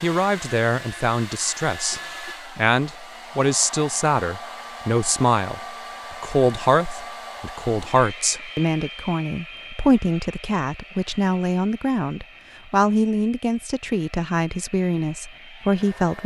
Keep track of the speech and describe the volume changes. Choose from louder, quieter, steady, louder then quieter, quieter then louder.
steady.